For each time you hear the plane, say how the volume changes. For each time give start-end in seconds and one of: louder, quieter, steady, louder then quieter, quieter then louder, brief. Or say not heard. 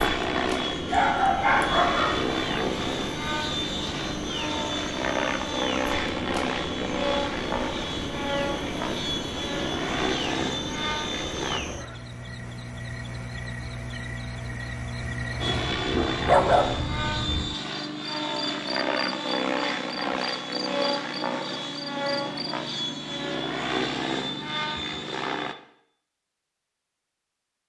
0.0-11.6 steady
15.4-25.6 steady.